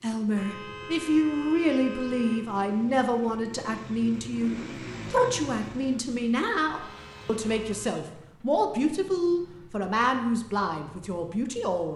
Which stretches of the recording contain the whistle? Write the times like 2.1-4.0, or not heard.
not heard.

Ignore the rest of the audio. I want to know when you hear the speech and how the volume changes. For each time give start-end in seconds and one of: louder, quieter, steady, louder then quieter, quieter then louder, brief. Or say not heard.
0.0-11.9 steady.